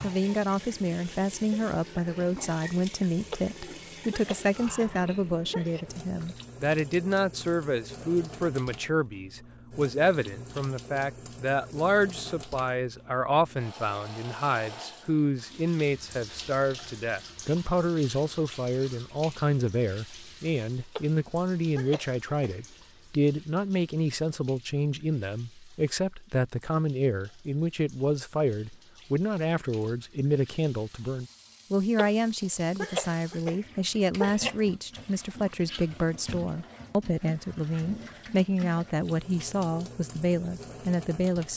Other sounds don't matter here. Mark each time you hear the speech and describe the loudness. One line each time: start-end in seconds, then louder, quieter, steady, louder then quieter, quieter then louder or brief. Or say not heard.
0.0-41.5 steady.